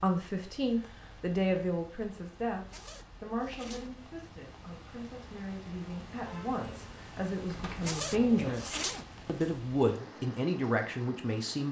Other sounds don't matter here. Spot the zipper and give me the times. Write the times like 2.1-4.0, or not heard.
2.6-3.9, 7.8-9.6.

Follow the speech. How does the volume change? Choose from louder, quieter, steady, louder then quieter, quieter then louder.
quieter then louder.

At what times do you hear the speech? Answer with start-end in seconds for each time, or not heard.
0.0-11.6.